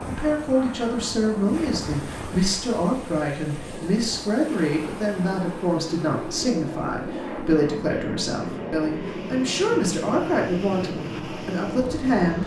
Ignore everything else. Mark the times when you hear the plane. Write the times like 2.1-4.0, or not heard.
0.0-12.4.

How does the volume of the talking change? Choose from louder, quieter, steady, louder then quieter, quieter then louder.
steady.